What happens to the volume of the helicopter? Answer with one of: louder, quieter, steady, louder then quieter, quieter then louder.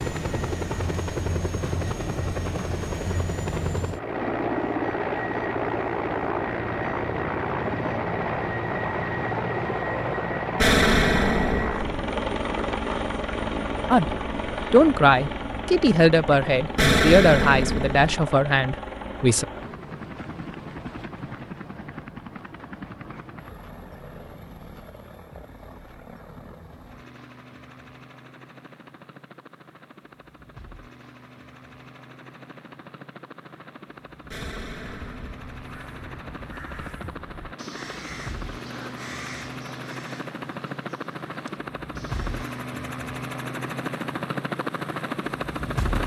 quieter then louder.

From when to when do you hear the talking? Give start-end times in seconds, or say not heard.
13.9-19.4.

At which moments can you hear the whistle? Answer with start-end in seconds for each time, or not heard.
not heard.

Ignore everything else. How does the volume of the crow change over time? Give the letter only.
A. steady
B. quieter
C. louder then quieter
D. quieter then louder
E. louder
C.